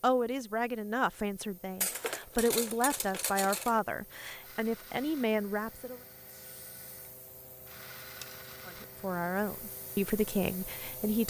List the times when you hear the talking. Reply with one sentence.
You can hear the talking from 0.0 to 6.0 s and from 8.7 to 11.2 s.